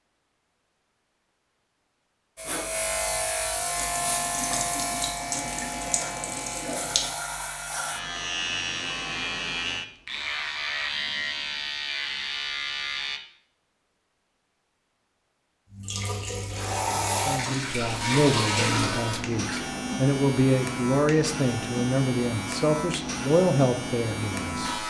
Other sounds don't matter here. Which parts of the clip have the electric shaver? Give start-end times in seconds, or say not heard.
2.4-13.2, 17.9-24.8.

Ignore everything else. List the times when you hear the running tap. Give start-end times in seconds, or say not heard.
3.6-7.2, 15.7-19.7.